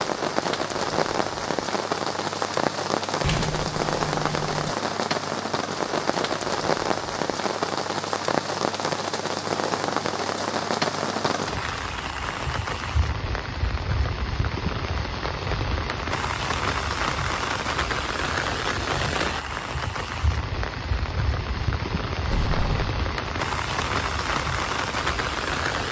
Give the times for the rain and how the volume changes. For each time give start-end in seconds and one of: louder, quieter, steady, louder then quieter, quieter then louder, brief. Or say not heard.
0.0-25.8 steady.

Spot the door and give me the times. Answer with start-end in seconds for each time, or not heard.
3.2-4.8, 22.2-22.9.